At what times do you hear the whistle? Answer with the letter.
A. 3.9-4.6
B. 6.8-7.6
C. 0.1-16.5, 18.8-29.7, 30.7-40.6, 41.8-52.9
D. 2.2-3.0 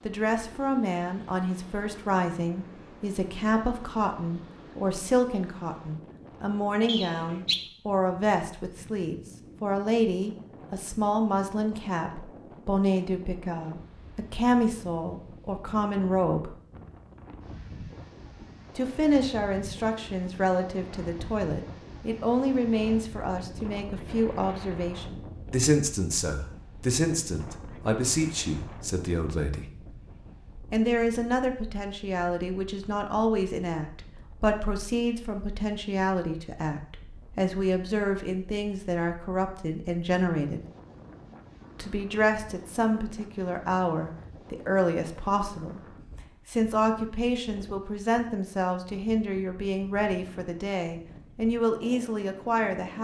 B.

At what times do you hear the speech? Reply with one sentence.
You can hear the speech from 0.1 to 16.5 s, from 18.8 to 29.7 s, from 30.7 to 40.6 s and from 41.8 to 52.9 s.